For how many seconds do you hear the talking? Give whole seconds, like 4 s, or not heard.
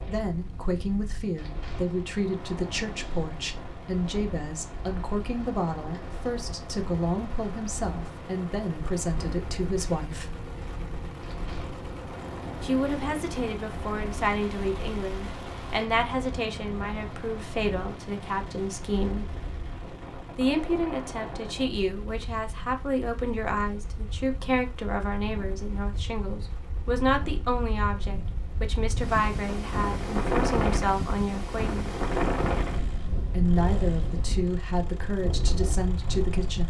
32 s.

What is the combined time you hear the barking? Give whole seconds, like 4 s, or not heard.
not heard.